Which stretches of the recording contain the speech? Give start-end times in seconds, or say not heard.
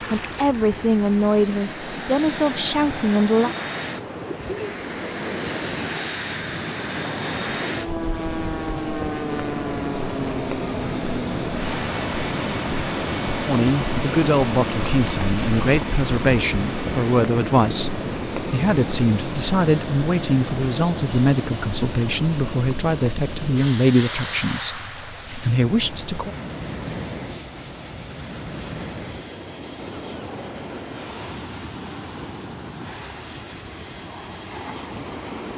0.1-3.5, 13.4-26.3.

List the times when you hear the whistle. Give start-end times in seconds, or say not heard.
not heard.